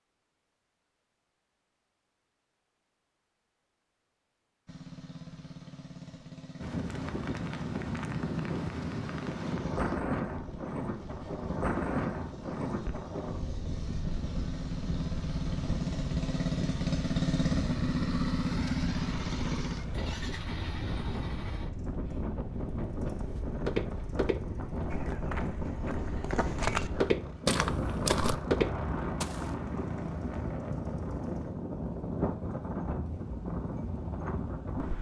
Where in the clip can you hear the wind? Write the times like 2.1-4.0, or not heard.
6.5-34.9.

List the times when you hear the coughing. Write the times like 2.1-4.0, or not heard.
not heard.